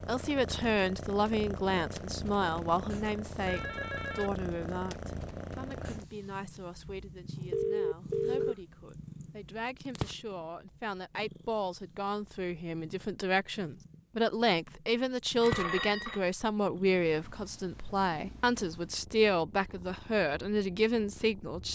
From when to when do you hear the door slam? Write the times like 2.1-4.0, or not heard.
not heard.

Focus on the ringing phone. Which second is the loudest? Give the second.
8 s.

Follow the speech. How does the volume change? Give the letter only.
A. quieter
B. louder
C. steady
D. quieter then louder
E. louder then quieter
D.